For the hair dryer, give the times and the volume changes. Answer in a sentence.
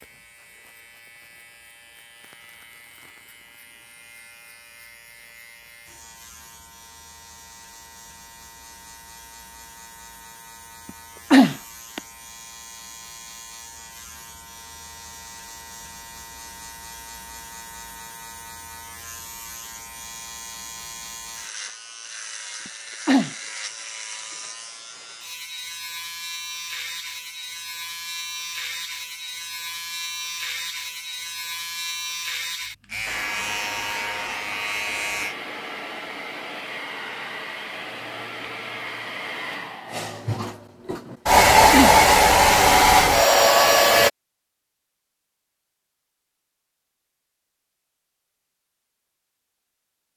You can hear the hair dryer from 33.0 to 44.1 s, getting louder.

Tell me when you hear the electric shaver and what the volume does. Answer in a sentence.
You can hear the electric shaver from 0.0 to 35.4 s, getting louder.